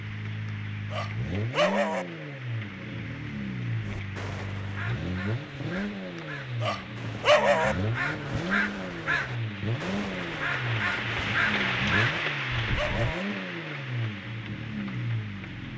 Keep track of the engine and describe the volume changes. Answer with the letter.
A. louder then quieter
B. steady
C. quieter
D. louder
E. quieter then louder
B.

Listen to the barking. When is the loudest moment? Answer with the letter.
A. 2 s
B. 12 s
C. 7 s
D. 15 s
C.